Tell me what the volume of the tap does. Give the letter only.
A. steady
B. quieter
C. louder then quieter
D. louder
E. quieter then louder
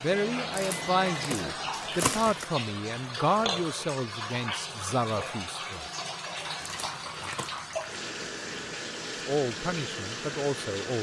A.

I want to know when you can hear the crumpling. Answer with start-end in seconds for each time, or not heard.
0.5-2.5, 6.6-8.0.